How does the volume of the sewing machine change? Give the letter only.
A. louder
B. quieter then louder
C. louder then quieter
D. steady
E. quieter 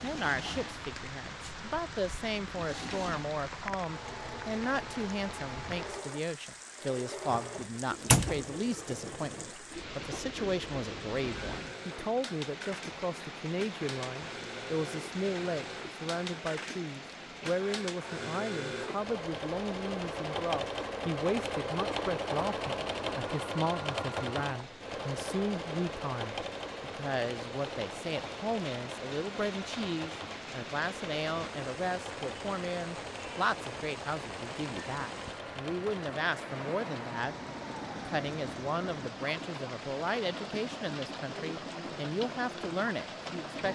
C.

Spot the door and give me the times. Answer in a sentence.
The door can be heard from 7.3 to 8.5 s.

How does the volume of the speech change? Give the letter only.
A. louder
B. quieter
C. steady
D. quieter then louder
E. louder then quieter
C.